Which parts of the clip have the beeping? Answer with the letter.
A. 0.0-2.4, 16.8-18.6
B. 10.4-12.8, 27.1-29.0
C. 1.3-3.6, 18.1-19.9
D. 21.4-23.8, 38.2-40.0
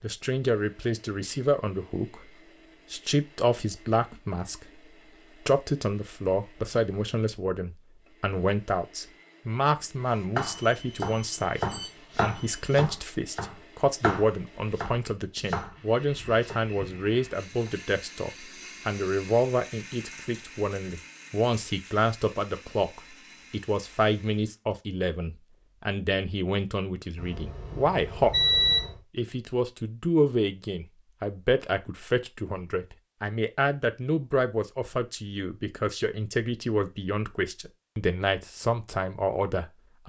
B.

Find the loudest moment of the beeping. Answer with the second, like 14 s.
29 s.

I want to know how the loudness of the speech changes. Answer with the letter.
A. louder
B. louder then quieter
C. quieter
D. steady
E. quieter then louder
D.